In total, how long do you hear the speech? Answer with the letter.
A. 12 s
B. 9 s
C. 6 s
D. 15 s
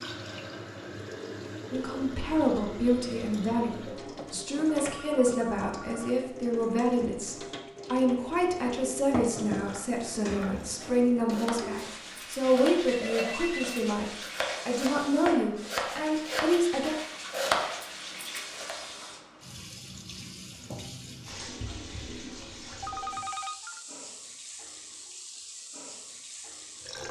D.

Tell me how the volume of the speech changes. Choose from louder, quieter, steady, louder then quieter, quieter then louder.
steady.